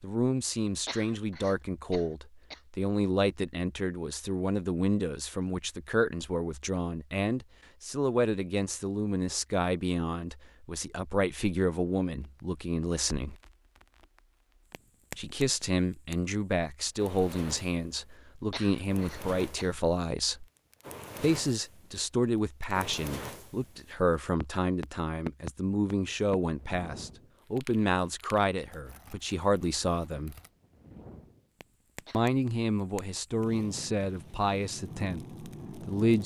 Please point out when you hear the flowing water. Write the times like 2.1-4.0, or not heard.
not heard.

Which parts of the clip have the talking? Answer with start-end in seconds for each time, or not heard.
0.0-13.3, 15.2-20.4, 21.2-30.4, 32.1-36.2.